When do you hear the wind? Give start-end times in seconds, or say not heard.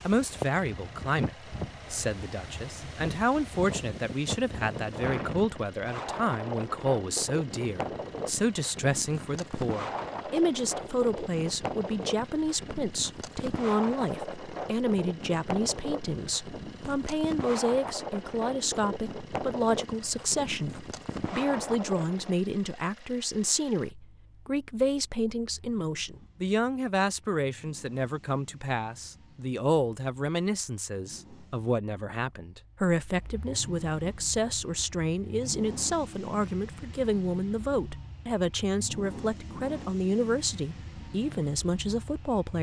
0.0-22.4.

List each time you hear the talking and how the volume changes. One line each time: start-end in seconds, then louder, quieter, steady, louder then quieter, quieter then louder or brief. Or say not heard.
0.0-42.5 steady.